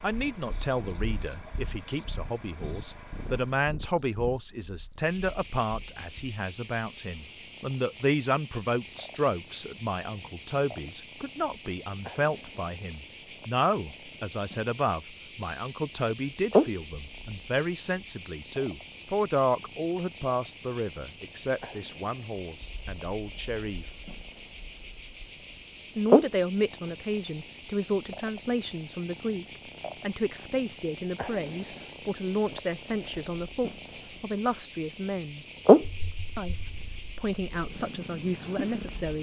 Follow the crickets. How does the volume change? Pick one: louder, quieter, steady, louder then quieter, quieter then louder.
steady.